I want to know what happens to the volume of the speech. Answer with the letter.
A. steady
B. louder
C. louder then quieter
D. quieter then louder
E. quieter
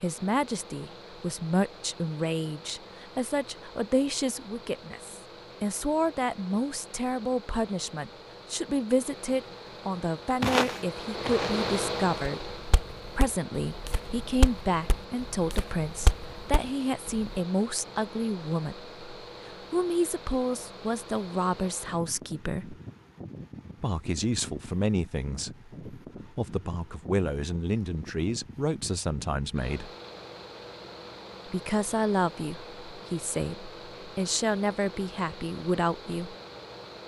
A.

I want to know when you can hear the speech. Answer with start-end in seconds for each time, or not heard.
0.0-22.8, 23.8-29.9, 31.4-36.4.